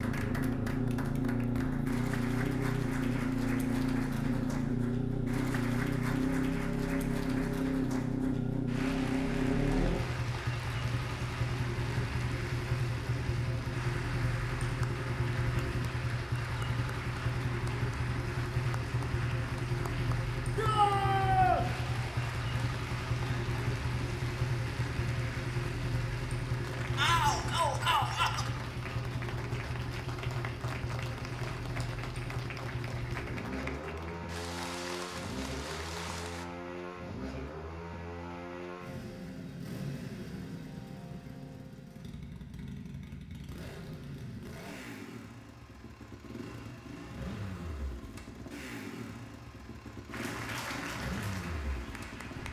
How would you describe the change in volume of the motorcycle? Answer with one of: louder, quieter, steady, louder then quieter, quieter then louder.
quieter.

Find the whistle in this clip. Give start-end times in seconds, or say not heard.
not heard.